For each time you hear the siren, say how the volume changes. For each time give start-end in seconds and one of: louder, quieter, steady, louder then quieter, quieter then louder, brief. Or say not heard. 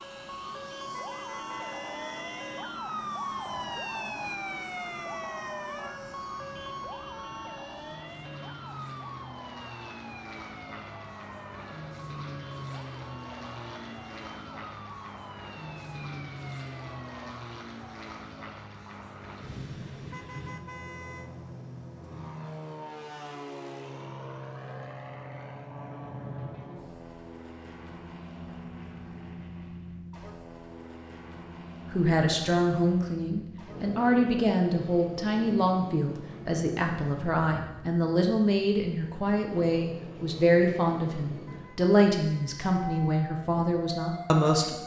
0.0-17.4 quieter
42.9-44.8 brief.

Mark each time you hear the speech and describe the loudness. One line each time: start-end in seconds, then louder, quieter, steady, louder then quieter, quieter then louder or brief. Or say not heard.
31.9-44.8 steady.